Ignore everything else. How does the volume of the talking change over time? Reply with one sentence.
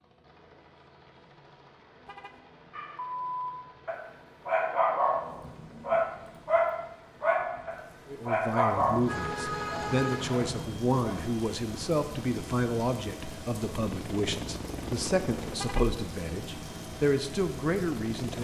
The volume of the talking stays about the same.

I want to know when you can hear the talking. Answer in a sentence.
You can hear the talking from 8.1 to 18.3 s.